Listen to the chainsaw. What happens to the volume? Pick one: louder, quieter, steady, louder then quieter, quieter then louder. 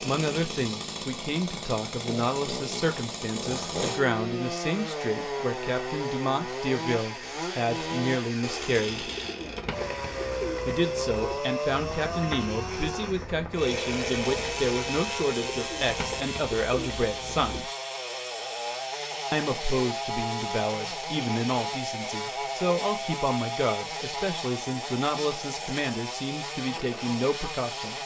steady.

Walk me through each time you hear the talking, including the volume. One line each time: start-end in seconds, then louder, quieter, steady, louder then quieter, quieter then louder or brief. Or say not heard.
0.0-9.1 steady
10.7-17.7 steady
19.3-28.0 steady.